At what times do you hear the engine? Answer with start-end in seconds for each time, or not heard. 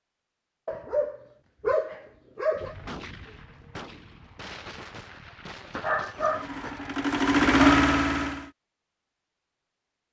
6.3-8.5.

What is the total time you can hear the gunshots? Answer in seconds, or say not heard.
4 s.